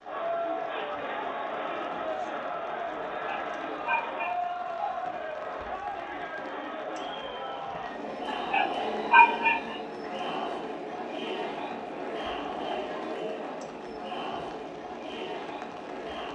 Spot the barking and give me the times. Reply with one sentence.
The barking can be heard from 3.2 to 5.0 s and from 8.2 to 9.8 s.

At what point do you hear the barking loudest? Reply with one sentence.
The volume of the barking peaks at 9 seconds.